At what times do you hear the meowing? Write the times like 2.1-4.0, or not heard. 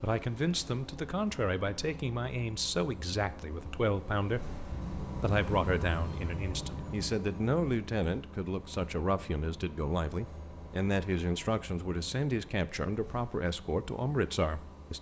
4.7-7.2.